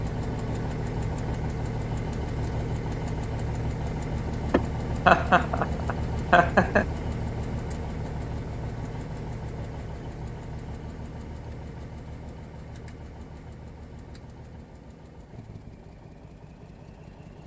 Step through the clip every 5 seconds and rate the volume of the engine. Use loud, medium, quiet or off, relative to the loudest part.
loud, loud, medium, quiet.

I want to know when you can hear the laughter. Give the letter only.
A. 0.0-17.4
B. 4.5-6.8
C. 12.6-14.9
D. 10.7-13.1
B.